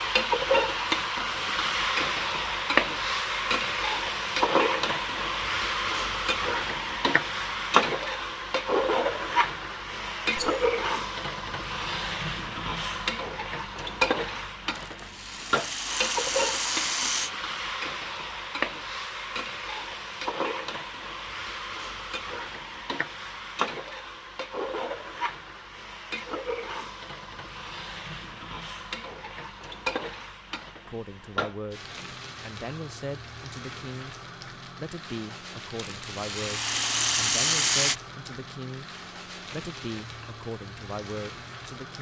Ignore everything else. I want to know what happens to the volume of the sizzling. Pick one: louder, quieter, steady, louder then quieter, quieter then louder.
quieter.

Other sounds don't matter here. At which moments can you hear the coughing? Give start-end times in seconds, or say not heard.
not heard.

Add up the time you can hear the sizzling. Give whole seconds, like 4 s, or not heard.
42 s.